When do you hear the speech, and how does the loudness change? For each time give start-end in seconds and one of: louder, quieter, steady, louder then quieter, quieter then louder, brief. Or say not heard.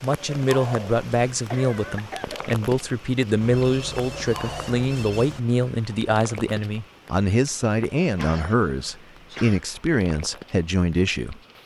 0.0-11.4 steady.